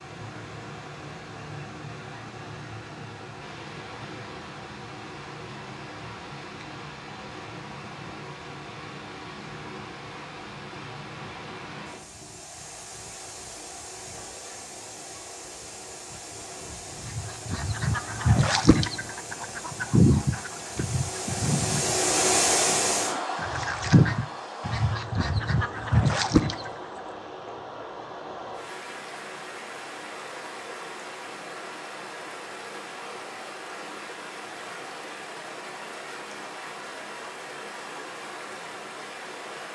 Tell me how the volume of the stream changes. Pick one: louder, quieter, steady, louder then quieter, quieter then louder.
louder then quieter.